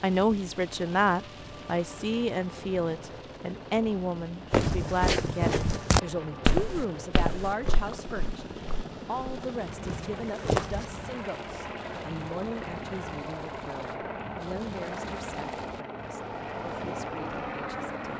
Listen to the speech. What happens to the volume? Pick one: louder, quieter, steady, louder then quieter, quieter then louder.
quieter.